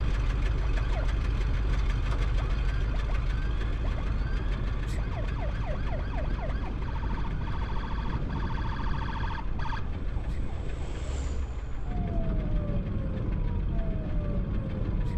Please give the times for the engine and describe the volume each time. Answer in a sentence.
You can hear the engine from 0.0 to 15.1 s, getting quieter.